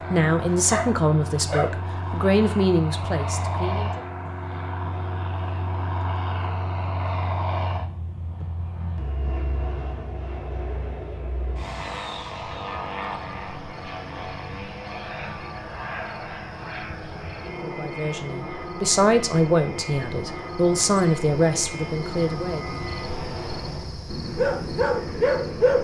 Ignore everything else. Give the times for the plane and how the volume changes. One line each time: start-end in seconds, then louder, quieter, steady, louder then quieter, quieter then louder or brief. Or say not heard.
0.0-25.7 steady.